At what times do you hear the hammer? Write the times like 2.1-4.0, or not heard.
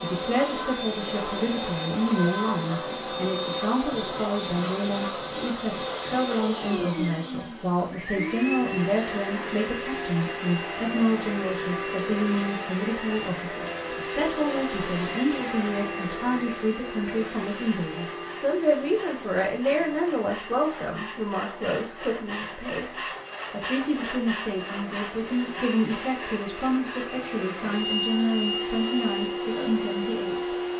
not heard.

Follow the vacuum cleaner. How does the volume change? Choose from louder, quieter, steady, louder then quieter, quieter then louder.
quieter then louder.